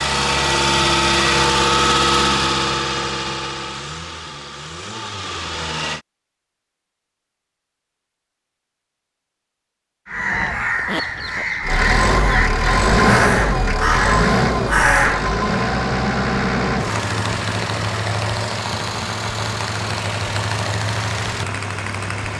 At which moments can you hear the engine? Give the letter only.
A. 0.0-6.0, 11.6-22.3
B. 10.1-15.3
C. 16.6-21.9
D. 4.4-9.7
A.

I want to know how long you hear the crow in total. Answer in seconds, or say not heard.
5 s.